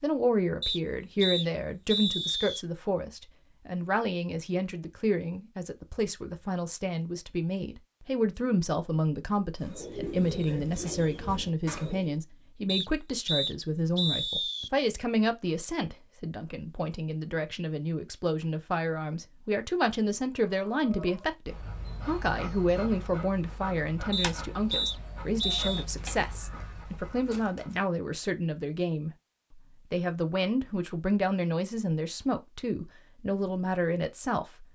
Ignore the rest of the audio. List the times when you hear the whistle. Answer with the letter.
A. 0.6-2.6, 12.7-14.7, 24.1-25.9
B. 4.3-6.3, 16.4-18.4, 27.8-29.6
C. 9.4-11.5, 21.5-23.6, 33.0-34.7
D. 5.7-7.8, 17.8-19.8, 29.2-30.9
A.